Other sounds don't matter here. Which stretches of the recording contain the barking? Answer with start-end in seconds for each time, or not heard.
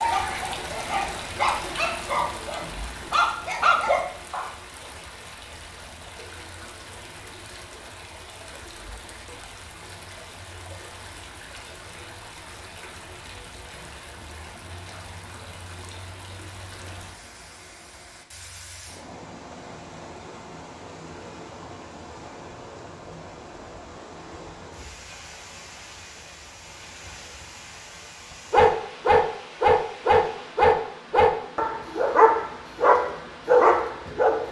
0.0-4.5, 28.5-34.4.